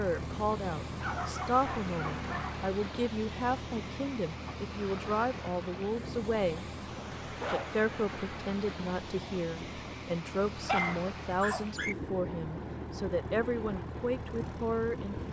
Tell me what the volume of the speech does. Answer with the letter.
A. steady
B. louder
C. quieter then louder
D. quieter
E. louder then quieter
A.